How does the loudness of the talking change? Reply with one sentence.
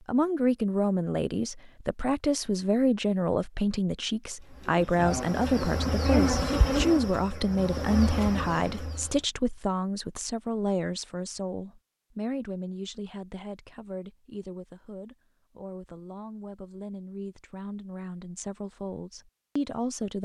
The loudness of the talking goes down.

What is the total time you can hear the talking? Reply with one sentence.
The talking can be heard for 20 seconds in total.